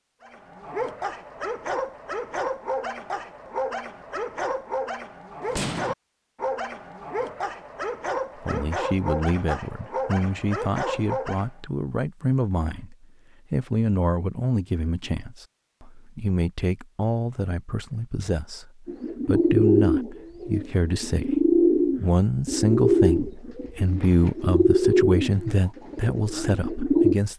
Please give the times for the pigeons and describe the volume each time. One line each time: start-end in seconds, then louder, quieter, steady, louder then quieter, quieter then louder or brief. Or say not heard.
18.9-27.1 quieter.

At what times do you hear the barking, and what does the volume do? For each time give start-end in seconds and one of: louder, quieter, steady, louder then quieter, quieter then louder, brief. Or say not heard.
0.2-11.5 steady.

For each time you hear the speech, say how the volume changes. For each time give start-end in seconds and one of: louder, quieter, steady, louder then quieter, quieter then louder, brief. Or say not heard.
8.4-27.3 steady.